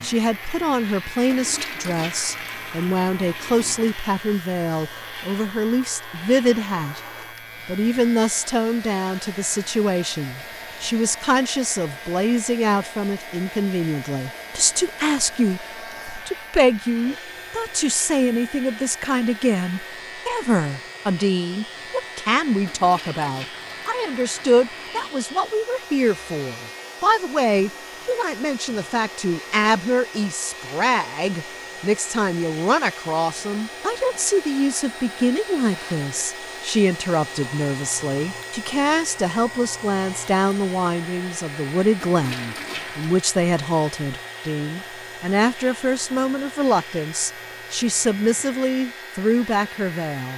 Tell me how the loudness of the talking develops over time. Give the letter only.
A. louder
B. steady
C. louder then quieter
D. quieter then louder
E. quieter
B.